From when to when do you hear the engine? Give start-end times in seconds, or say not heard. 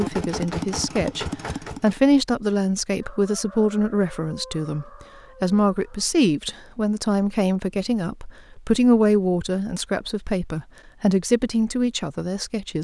0.0-2.0.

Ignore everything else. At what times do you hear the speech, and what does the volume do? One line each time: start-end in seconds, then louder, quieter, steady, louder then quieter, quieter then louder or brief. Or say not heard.
0.0-12.7 steady.